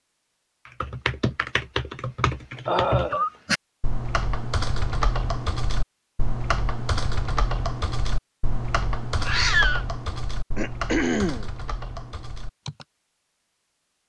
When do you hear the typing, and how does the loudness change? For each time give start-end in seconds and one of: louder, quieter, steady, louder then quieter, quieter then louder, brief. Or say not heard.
0.7-12.8 quieter.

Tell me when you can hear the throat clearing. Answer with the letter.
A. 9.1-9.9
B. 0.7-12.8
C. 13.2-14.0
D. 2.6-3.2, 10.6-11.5
D.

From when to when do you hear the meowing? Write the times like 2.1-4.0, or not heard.
9.1-9.9.